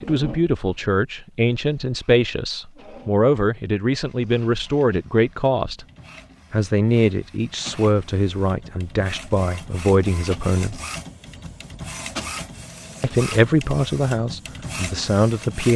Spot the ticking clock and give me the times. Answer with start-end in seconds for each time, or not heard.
not heard.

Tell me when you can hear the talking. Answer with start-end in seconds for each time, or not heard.
0.0-5.8, 6.5-10.8, 13.0-15.7.